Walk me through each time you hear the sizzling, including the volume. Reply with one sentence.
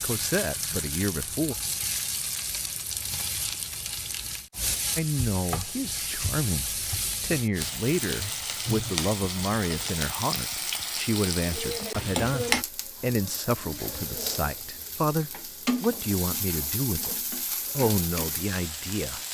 The sizzling can be heard from 0.0 to 19.2 s, at a steady volume.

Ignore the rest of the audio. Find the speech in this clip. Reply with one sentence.
You can hear the speech from 0.0 to 1.6 s and from 5.0 to 19.2 s.